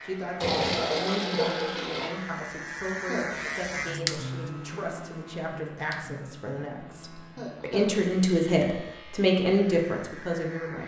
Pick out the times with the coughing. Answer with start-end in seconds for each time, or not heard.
3.0-3.5, 7.3-8.0.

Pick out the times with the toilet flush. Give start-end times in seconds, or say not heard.
0.4-2.1.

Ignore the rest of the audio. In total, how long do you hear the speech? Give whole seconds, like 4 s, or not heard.
11 s.